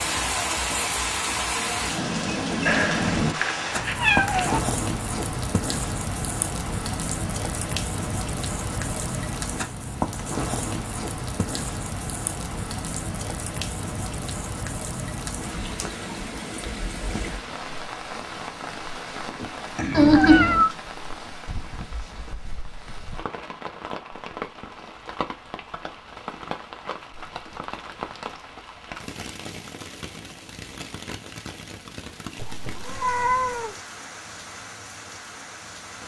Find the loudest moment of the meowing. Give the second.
20 s.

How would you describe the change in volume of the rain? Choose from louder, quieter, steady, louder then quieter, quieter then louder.
quieter.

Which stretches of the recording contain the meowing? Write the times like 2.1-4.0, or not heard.
2.6-4.6, 19.9-20.7, 32.4-33.8.